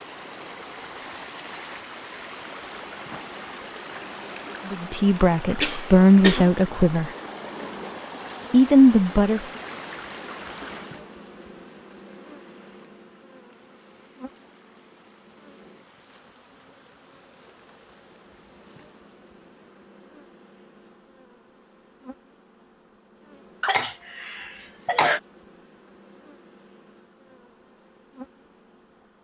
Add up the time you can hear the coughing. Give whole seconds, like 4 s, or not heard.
3 s.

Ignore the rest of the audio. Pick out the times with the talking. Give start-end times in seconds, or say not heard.
4.7-7.1, 8.5-9.4.